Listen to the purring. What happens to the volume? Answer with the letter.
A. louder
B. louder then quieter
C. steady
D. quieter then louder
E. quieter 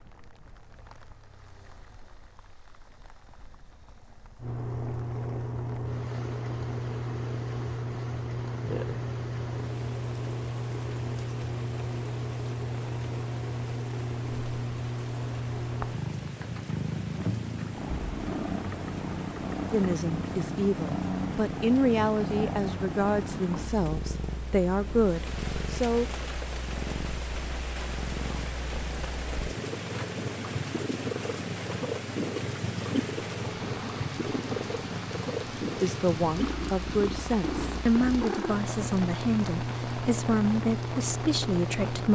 C.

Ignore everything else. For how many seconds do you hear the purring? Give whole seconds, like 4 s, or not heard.
38 s.